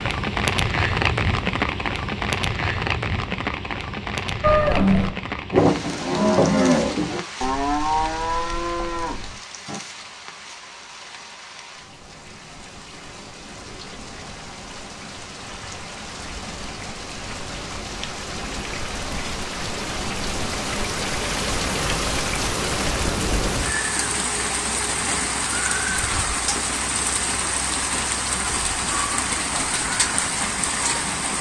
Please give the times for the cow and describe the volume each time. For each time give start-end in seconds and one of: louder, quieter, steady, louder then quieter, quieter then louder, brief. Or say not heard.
4.4-9.8 quieter.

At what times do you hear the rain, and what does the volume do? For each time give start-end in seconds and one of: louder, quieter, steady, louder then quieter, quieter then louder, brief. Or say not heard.
0.0-31.3 quieter then louder.